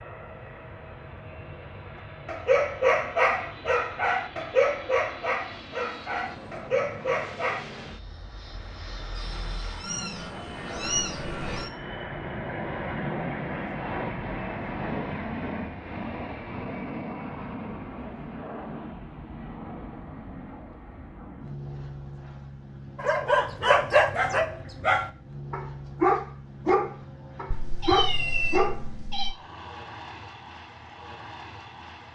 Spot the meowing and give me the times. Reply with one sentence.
You can hear the meowing from 9.2 to 11.7 s and from 27.5 to 29.3 s.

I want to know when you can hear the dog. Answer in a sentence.
You can hear the dog from 2.2 to 7.7 s and from 22.9 to 28.8 s.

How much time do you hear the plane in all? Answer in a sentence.
The plane can be heard for 32 seconds in total.